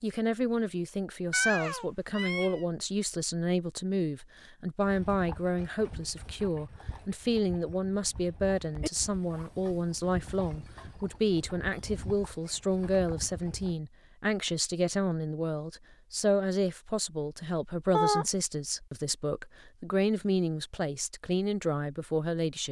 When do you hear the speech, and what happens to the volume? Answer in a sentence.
You can hear the speech from 0.0 to 22.6 s, at a steady volume.